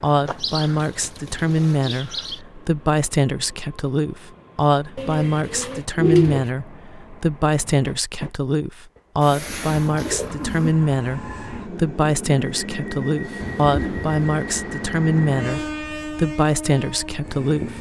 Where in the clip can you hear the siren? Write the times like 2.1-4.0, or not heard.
not heard.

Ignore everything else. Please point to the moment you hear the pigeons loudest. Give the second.
6 s.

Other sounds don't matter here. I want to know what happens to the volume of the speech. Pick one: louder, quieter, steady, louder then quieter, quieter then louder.
steady.